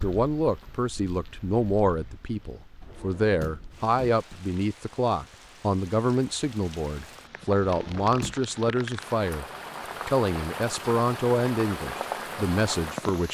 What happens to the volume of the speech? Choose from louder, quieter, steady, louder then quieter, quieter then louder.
steady.